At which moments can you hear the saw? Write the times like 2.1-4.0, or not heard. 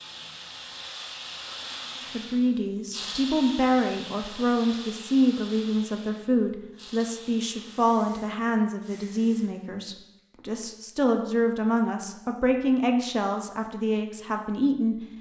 not heard.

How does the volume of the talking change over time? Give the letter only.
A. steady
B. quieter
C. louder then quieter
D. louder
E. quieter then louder
A.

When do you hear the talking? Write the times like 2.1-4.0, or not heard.
2.0-15.0.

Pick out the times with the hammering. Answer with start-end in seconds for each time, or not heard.
not heard.